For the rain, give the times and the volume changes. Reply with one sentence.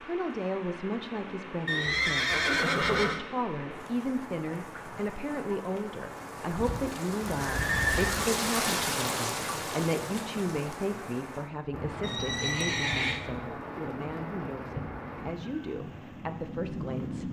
You can hear the rain from 0.0 to 17.2 s, getting louder then quieter.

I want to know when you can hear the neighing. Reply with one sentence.
You can hear the neighing from 1.6 to 3.2 s, from 6.5 to 8.3 s and from 12.0 to 13.2 s.